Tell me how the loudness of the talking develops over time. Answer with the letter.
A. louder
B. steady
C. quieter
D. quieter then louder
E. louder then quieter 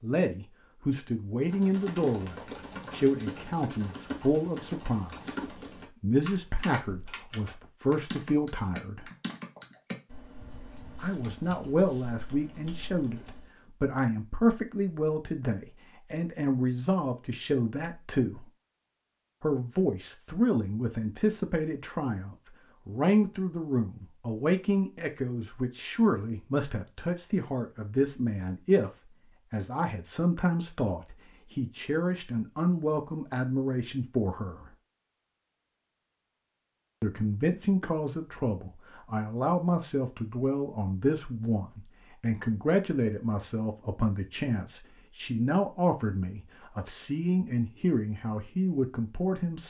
B.